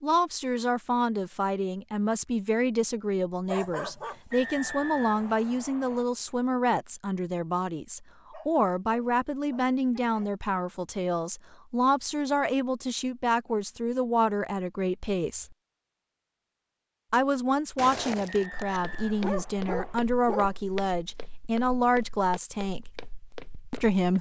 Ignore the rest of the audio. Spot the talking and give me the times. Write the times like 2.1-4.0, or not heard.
0.0-15.6, 17.1-23.1, 23.7-24.1.